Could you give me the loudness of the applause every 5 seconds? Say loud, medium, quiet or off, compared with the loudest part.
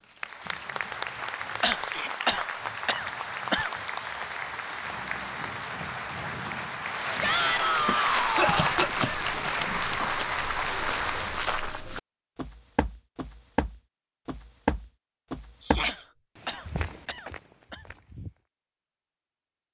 loud, loud, loud, off.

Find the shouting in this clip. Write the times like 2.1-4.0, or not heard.
1.8-2.2, 7.2-8.8, 15.7-16.1.